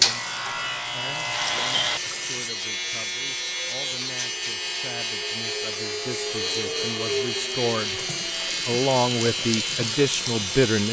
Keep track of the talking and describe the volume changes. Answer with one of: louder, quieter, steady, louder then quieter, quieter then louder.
louder.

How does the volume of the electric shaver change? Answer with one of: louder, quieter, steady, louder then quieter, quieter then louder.
steady.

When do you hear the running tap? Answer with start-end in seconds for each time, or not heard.
0.1-2.5, 6.0-10.7.